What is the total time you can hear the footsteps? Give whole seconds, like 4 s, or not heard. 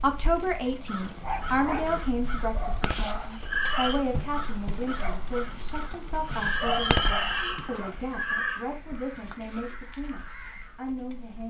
not heard.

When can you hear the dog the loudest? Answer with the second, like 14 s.
7 s.